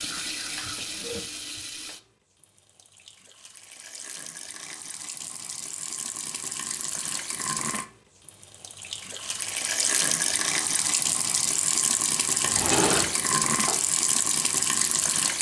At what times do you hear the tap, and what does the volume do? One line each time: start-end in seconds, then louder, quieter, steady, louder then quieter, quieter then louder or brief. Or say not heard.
0.0-15.3 louder.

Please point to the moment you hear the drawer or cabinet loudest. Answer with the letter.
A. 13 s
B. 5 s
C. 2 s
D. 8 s
A.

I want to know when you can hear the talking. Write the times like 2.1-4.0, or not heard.
not heard.